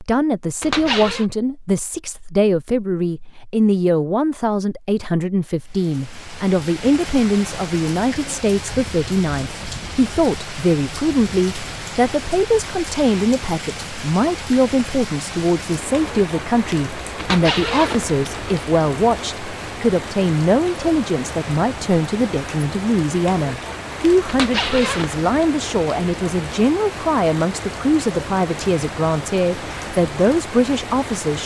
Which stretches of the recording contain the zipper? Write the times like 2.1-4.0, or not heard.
0.6-1.2, 17.1-18.6, 24.2-25.2.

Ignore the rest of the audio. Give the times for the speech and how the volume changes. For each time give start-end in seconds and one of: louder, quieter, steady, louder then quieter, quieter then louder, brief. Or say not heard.
0.0-31.4 steady.